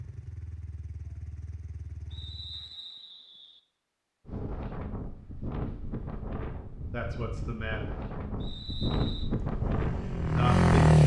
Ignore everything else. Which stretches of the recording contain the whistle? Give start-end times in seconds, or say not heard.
2.1-3.6, 8.4-9.3.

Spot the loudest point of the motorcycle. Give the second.
11 s.